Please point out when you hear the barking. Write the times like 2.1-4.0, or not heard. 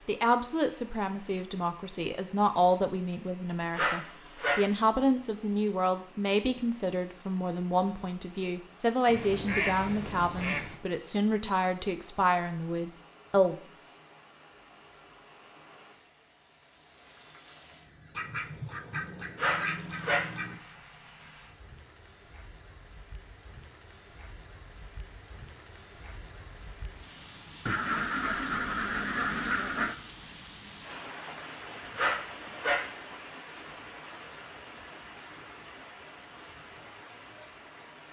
3.8-4.7, 19.4-20.4, 31.9-32.9.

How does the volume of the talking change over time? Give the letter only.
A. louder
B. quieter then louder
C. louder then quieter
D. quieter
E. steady
E.